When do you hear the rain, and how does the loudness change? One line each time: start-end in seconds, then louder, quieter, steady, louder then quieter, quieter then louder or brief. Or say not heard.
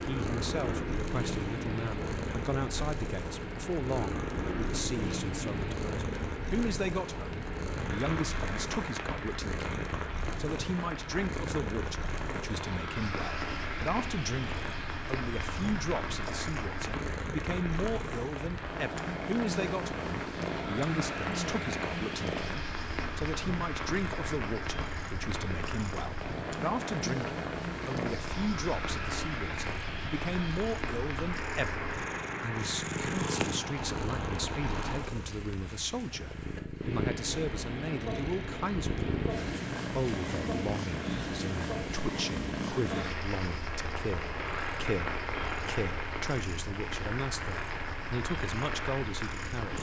0.0-49.7 steady.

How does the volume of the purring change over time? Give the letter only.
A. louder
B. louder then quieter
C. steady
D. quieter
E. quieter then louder
C.